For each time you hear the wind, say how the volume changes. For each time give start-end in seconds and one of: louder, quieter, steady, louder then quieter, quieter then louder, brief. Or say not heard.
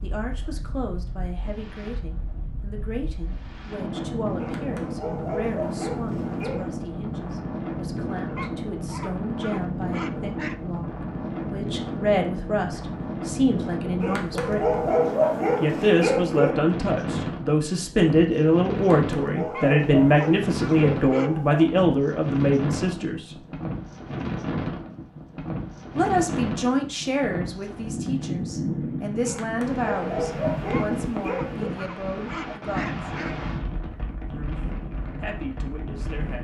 0.0-36.3 steady.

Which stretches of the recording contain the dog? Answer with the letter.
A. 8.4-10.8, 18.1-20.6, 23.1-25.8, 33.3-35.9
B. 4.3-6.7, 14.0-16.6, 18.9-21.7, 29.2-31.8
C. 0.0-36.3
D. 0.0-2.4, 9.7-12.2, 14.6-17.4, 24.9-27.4
B.